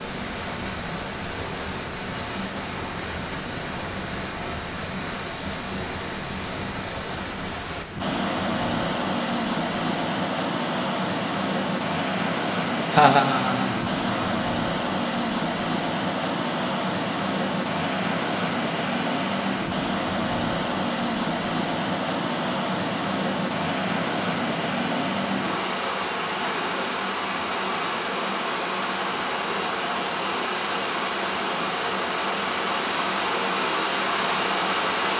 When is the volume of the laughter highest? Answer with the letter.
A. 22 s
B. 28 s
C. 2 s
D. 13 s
D.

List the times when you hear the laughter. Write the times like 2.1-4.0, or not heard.
12.9-14.3.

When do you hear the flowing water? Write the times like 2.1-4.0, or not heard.
0.0-35.1.